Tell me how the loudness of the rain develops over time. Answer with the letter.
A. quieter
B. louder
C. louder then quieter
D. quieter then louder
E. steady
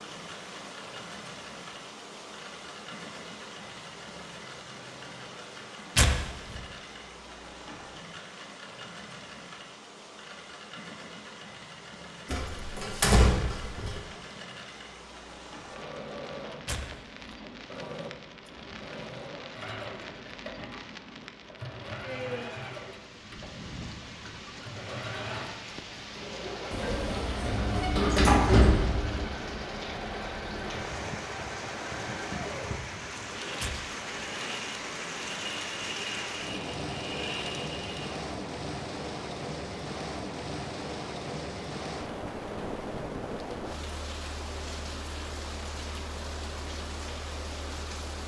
B.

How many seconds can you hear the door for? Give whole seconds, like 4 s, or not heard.
4 s.